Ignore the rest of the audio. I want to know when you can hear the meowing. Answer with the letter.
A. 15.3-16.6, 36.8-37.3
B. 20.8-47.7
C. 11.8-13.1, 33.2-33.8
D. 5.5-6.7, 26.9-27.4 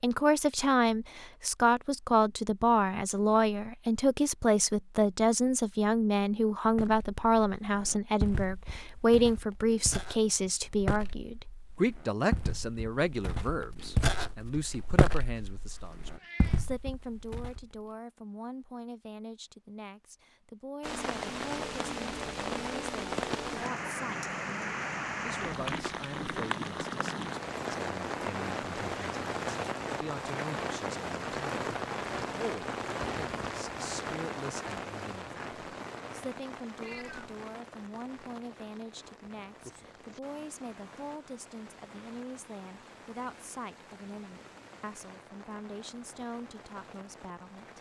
A.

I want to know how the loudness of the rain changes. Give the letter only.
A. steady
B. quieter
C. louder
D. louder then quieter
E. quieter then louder
B.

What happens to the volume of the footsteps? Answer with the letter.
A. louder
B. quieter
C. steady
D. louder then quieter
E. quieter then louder
D.